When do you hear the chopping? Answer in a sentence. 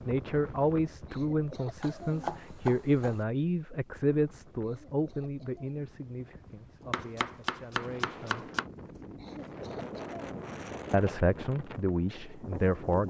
You can hear the chopping from 1.8 to 3.2 s and from 6.9 to 8.7 s.